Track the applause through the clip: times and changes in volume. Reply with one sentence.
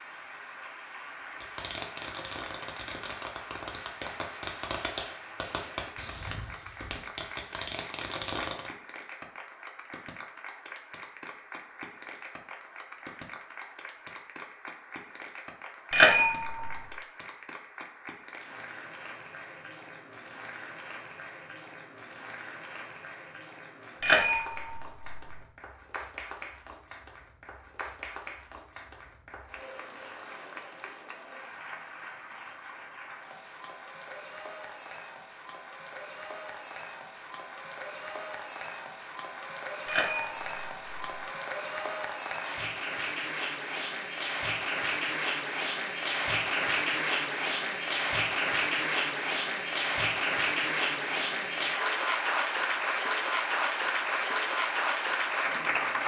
The applause can be heard from 0.0 to 56.0 s, getting louder.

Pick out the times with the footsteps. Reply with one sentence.
You can't hear the footsteps here.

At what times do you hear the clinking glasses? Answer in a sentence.
The clinking glasses can be heard from 15.9 to 16.9 s, from 24.0 to 25.4 s and from 39.9 to 41.2 s.